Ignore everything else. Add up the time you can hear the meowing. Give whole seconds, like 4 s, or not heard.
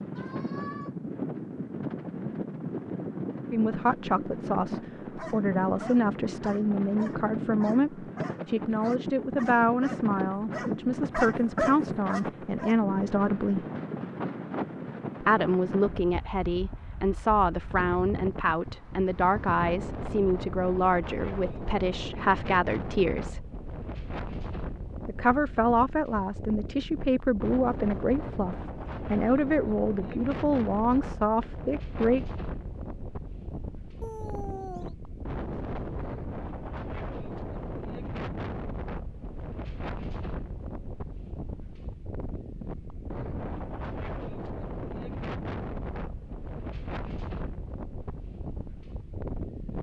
2 s.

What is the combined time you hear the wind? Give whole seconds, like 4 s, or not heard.
50 s.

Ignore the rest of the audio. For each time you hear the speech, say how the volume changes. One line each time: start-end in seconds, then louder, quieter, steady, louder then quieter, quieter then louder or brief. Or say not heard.
3.5-13.7 steady
15.2-23.4 steady
25.1-32.2 steady.